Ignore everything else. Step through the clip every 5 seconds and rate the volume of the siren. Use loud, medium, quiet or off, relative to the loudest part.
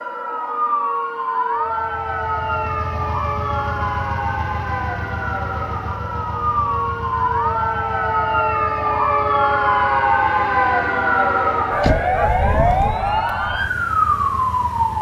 medium, loud, loud.